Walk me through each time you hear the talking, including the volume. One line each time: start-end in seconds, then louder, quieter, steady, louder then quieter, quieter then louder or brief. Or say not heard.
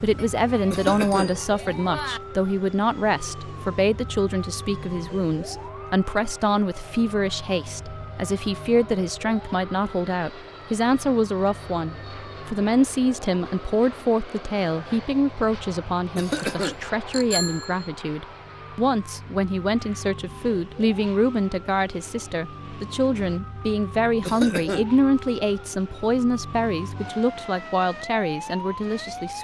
0.0-29.3 steady.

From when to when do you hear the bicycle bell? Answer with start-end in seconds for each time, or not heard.
0.1-2.2, 16.4-17.9.